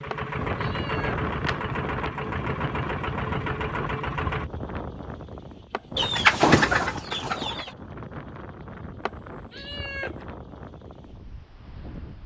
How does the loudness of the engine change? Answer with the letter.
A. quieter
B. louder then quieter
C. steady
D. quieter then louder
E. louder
C.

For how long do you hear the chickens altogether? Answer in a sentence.
You can hear the chickens for 2 seconds altogether.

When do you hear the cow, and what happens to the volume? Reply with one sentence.
The cow can't be heard in this clip.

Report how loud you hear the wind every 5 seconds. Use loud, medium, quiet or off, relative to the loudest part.
loud, medium, medium.